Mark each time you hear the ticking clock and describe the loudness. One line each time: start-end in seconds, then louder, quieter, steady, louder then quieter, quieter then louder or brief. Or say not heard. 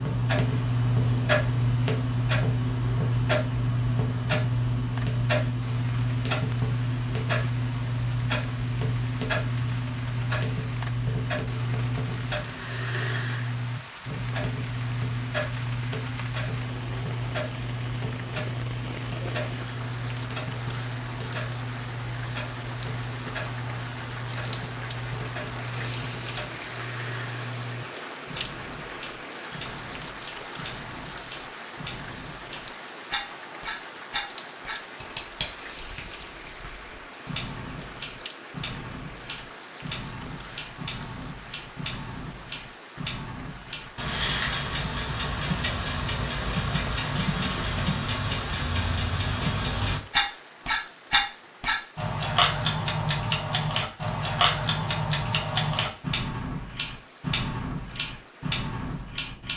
0.0-59.5 quieter then louder.